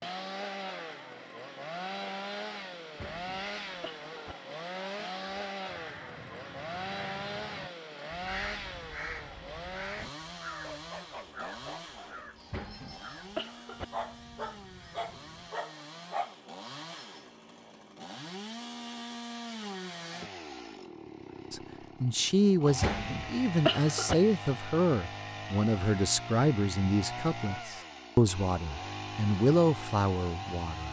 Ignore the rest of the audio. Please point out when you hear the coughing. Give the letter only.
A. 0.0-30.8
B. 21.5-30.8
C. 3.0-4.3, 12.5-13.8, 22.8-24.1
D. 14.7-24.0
C.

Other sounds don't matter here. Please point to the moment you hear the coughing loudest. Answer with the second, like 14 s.
24 s.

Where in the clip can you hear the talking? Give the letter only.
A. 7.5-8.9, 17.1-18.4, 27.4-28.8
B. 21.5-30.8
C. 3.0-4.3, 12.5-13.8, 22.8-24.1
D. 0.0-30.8
B.